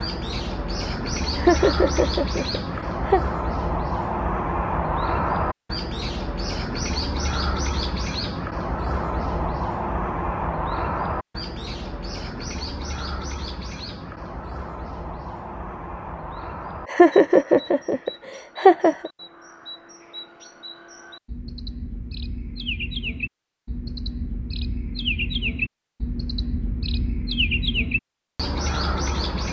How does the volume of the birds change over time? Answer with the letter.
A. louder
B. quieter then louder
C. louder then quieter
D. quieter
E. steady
B.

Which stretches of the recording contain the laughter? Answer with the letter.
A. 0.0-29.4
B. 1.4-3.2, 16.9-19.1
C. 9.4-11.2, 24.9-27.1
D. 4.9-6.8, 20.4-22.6
B.